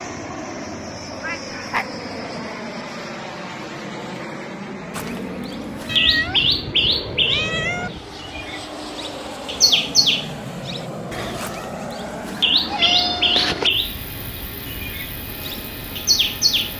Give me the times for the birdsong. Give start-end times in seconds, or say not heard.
5.0-16.7.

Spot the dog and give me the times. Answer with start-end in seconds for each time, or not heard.
not heard.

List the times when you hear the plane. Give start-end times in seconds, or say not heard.
0.0-16.7.